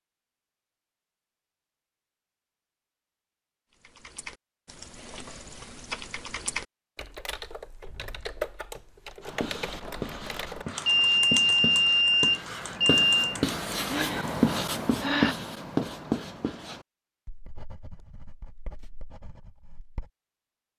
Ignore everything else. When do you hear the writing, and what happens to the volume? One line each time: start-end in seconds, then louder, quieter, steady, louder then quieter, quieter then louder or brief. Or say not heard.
9.2-20.1 louder then quieter.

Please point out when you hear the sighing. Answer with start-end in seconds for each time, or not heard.
13.8-15.3.